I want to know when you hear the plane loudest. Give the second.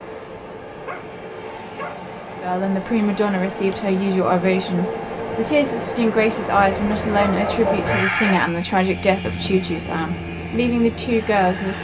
8 s.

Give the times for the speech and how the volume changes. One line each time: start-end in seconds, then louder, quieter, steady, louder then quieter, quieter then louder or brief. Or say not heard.
2.4-11.7 steady.